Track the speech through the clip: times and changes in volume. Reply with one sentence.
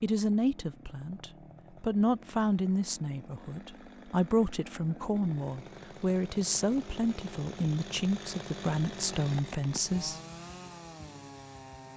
You can hear the speech from 0.0 to 10.2 s, at a steady volume.